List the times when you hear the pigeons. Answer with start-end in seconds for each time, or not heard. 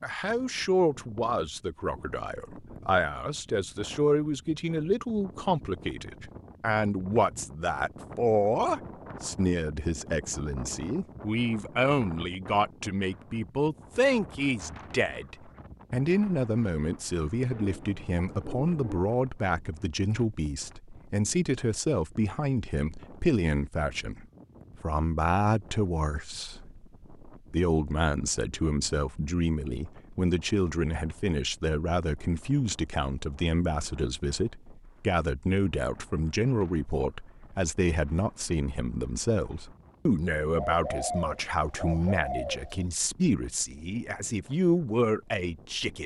17.5-19.1, 40.5-42.9.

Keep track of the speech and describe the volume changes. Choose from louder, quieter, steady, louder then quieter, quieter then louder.
steady.